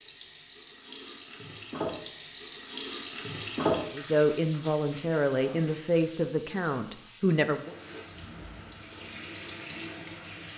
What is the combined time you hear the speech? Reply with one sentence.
The speech can be heard for 4 seconds in total.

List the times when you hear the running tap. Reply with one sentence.
You can hear the running tap from 0.0 to 10.5 s.